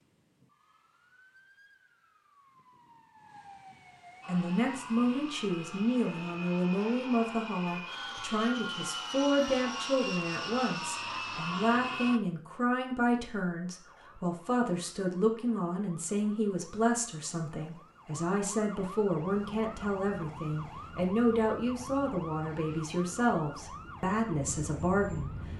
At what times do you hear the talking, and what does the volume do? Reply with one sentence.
You can hear the talking from 4.2 to 25.5 s, at a steady volume.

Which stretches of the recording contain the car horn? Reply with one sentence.
The car horn can't be heard in this clip.